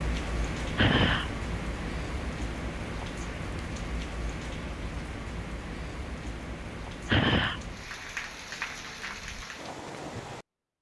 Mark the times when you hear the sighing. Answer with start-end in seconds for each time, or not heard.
0.8-1.3, 7.0-7.6.